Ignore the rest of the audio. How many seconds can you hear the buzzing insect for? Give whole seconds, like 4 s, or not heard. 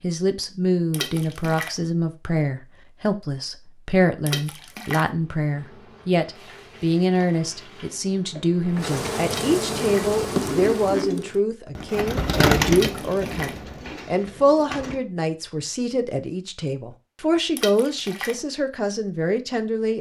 6 s.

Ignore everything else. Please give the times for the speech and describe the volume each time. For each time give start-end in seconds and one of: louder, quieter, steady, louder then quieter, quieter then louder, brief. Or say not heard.
0.0-19.9 steady.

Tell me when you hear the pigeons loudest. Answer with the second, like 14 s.
13 s.